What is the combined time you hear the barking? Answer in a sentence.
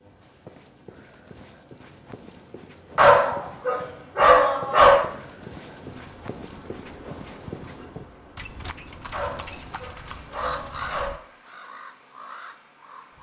You can hear the barking for 4 seconds altogether.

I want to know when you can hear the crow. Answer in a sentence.
You can hear the crow from 10.2 to 13.1 s.